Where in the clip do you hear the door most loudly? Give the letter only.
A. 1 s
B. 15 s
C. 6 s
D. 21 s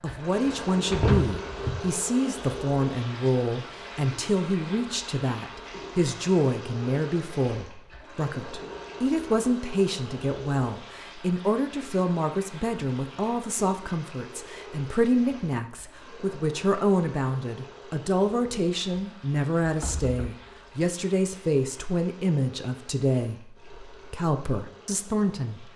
A.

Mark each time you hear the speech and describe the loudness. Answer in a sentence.
You can hear the speech from 0.0 to 25.7 s, at a steady volume.